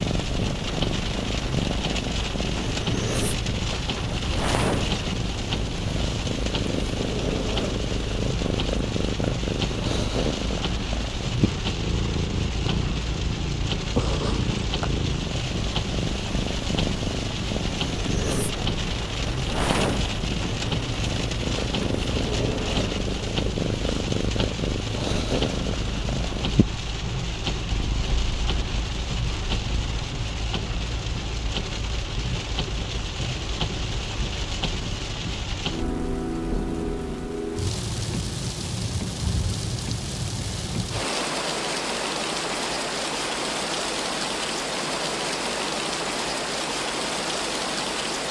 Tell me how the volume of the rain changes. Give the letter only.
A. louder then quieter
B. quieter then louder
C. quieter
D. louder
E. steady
E.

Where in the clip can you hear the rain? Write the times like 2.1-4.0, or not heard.
0.0-48.2.